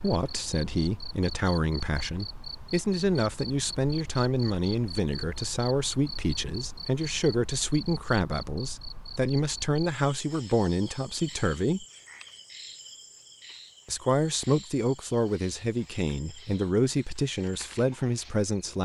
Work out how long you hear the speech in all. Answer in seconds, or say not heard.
17 s.